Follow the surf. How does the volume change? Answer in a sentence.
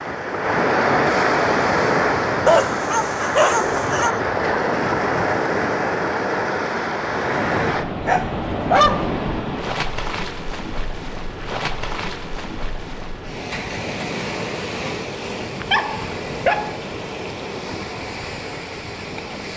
The loudness of the surf goes down.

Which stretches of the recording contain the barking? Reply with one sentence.
You can hear the barking from 2.5 to 4.2 s, from 8.1 to 9.2 s and from 15.6 to 16.8 s.